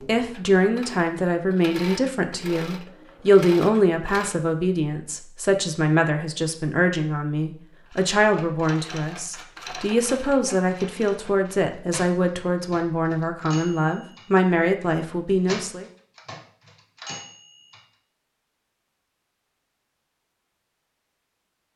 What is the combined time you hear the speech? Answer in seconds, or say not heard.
16 s.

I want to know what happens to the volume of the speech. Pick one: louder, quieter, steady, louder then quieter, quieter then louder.
steady.